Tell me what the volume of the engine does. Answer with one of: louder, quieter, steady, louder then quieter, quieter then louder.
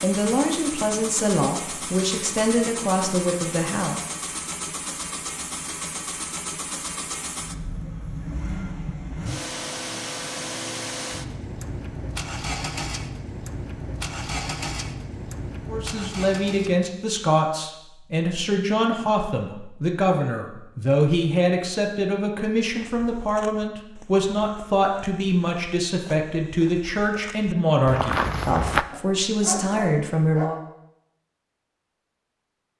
steady.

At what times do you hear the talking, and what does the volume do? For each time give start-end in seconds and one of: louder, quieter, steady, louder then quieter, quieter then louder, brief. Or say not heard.
0.0-4.0 steady
15.7-30.6 steady.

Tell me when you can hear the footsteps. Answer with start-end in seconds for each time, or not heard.
22.6-28.9.